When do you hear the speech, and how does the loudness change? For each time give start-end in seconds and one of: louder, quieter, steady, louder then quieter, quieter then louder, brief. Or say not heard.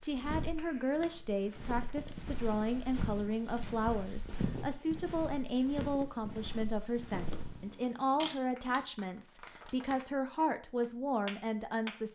0.0-12.1 steady.